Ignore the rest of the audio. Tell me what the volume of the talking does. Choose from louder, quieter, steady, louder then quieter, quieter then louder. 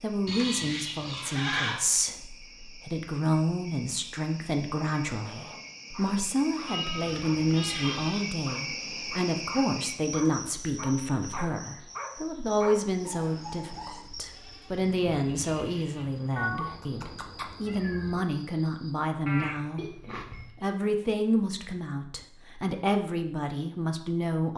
steady.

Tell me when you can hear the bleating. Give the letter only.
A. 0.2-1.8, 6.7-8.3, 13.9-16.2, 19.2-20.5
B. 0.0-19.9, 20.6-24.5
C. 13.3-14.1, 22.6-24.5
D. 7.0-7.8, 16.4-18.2
A.